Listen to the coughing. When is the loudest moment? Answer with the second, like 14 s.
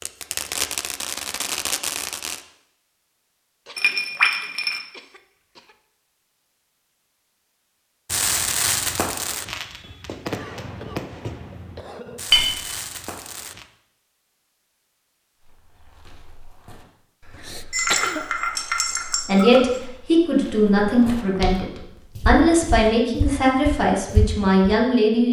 18 s.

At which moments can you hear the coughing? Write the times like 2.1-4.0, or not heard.
3.6-5.8, 10.2-12.2, 17.3-18.2.